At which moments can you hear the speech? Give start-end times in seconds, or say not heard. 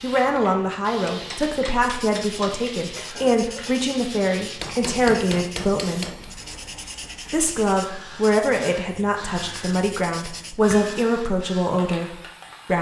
0.0-6.1, 7.3-12.7.